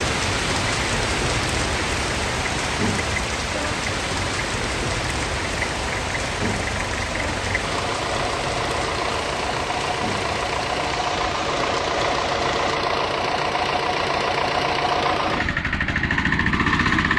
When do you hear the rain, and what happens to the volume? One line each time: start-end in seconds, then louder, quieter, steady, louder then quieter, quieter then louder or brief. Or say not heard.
0.0-12.8 quieter.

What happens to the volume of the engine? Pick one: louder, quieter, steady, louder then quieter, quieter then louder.
louder.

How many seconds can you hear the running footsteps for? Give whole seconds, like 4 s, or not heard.
not heard.